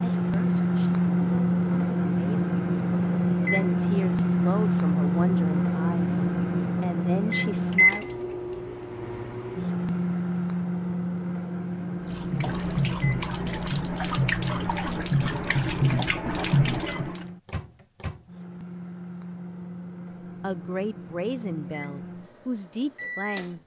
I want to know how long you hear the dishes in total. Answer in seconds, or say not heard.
not heard.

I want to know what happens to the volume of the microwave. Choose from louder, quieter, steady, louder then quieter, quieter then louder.
quieter.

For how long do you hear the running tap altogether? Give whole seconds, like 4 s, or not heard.
5 s.